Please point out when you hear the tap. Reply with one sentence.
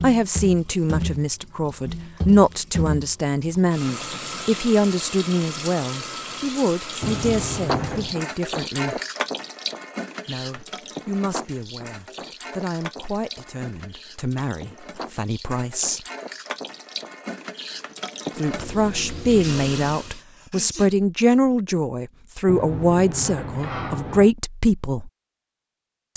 You can hear the tap from 0.0 to 20.2 s.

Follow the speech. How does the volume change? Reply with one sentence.
The volume of the speech goes down, then up.